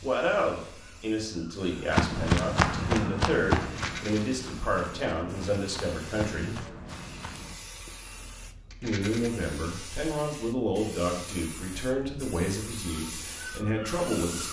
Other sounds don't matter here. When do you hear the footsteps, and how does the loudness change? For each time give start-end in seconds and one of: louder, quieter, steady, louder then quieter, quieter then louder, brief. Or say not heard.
1.6-8.1 quieter.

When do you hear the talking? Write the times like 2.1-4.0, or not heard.
0.0-6.7, 8.8-14.4.